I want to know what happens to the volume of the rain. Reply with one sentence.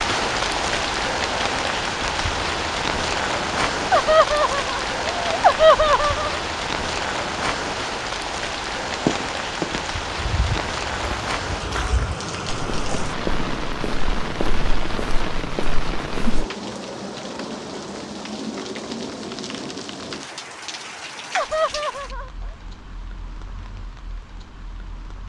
The loudness of the rain goes down.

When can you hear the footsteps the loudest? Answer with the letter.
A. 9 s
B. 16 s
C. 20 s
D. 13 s
A.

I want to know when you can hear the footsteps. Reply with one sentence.
You can hear the footsteps from 8.8 to 16.4 s.